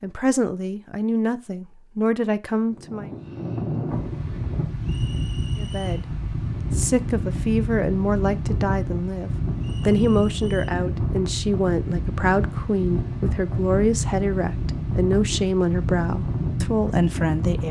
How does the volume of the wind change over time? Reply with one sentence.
The loudness of the wind stays about the same.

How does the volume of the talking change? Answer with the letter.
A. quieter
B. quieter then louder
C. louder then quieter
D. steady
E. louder
D.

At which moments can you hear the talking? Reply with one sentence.
You can hear the talking from 0.0 to 3.1 s and from 5.5 to 17.6 s.